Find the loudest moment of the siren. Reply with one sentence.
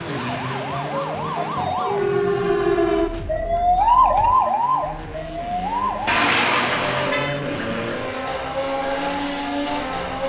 The volume of the siren peaks at 4 seconds.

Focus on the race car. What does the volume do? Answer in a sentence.
The volume of the race car goes down, then up.